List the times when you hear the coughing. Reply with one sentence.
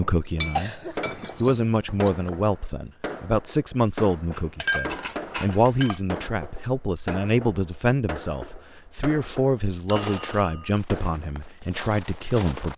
You can hear the coughing from 0.6 to 1.4 s.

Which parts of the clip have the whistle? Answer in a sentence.
You can't hear the whistle here.